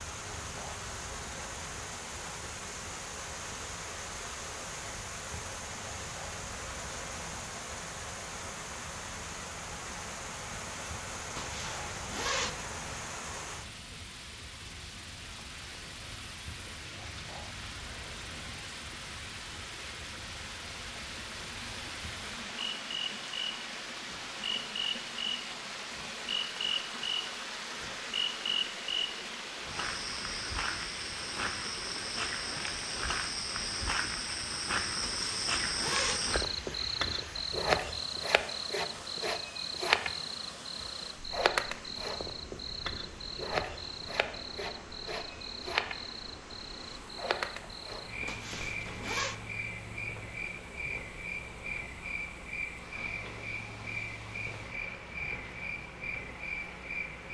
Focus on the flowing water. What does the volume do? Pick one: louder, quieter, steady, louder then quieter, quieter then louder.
quieter.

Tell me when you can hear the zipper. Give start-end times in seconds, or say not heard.
11.3-12.5, 35.0-36.2, 48.2-49.4.